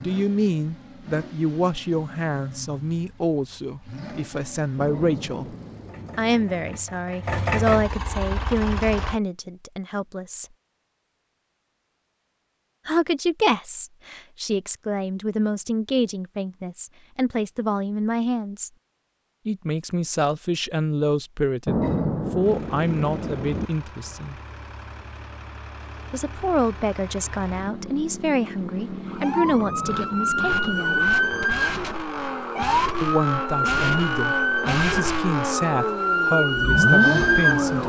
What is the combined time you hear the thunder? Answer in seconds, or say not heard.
6 s.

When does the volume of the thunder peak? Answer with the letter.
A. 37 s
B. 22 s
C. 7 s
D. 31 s
B.